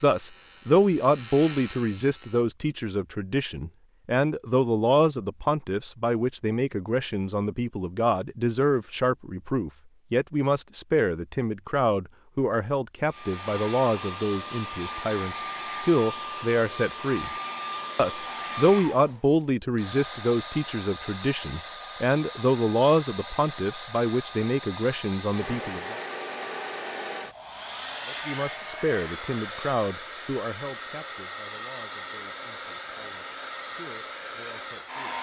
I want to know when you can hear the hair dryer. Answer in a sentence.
The hair dryer can be heard from 13.1 to 35.1 s.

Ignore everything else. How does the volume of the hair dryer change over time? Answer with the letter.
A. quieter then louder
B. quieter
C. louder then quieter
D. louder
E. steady
E.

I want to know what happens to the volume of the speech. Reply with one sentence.
The loudness of the speech goes down.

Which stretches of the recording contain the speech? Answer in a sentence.
The speech can be heard from 0.0 to 17.3 s, from 17.9 to 26.0 s and from 28.1 to 35.1 s.